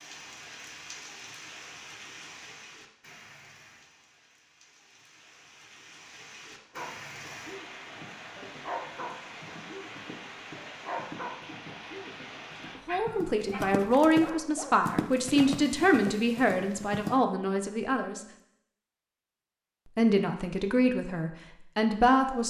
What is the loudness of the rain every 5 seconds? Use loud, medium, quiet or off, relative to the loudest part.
loud, loud, loud, off, off.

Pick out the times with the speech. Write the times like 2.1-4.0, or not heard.
12.8-18.2, 19.9-22.4.